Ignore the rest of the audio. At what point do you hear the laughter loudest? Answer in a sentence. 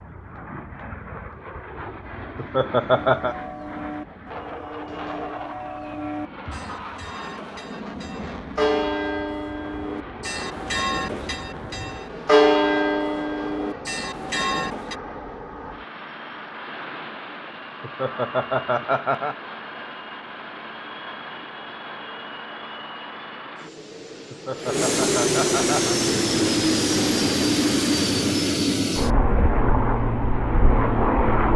The volume of the laughter peaks at 3 seconds.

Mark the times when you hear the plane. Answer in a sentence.
The plane can be heard from 0.0 to 31.5 s.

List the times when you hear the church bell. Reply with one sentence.
The church bell can be heard from 2.9 to 14.9 s.